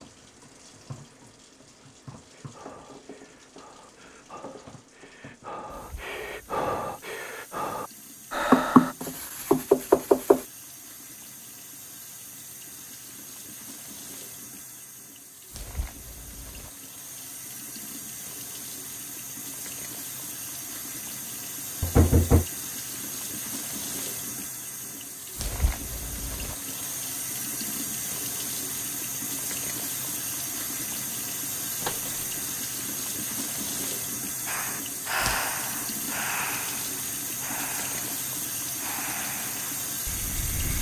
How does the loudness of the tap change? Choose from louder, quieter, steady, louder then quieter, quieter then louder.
louder.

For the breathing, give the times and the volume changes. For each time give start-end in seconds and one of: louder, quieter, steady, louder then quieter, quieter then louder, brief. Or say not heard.
2.3-8.9 louder
34.5-40.7 quieter.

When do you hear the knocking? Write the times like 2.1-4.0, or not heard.
8.5-10.4, 21.8-22.4, 31.8-32.4.